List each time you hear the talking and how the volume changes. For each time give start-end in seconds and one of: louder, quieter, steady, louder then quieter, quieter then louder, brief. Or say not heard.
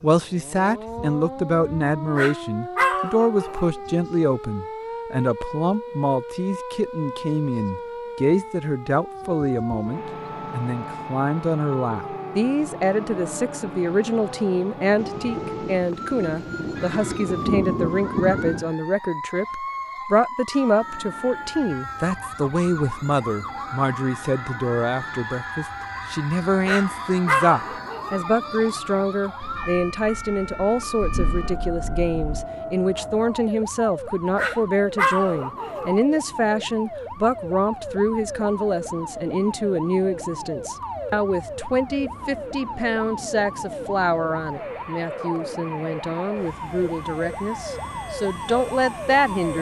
0.0-49.5 steady.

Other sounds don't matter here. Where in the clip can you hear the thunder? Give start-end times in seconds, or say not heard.
14.9-18.7, 29.4-32.4.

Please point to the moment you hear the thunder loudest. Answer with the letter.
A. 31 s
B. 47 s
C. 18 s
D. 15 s
C.